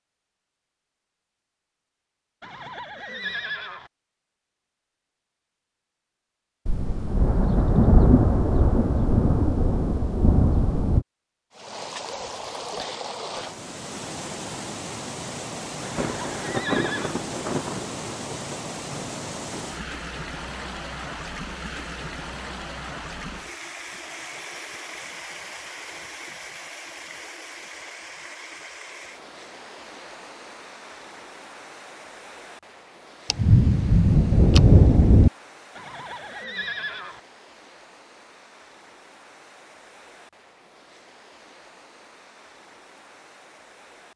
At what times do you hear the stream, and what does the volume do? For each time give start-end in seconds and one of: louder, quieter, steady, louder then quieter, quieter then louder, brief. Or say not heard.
11.5-44.1 quieter.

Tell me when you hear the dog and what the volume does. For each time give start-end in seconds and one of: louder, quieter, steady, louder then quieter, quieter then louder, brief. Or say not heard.
not heard.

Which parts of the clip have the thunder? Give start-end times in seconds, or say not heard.
6.7-11.1, 15.9-19.5, 33.3-35.3.